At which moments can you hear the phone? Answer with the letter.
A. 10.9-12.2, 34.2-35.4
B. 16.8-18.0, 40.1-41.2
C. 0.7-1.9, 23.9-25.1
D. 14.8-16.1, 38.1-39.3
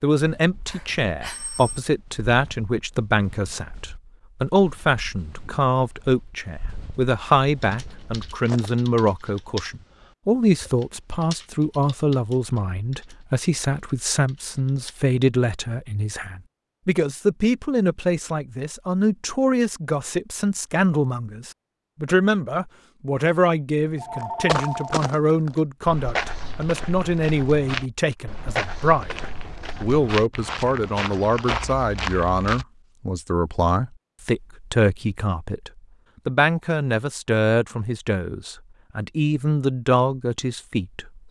C.